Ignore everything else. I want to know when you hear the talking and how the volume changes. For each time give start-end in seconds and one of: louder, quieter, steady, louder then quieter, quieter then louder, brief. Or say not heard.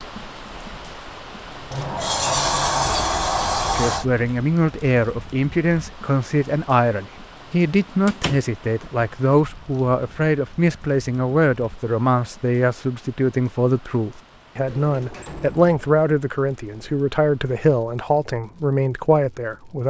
3.7-19.8 steady.